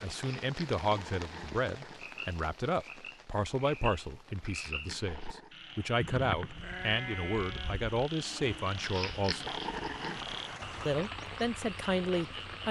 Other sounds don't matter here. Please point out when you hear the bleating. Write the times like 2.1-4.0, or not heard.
6.5-7.8.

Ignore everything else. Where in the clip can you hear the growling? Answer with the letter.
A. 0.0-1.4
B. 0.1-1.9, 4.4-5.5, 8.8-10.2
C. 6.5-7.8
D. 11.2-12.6
B.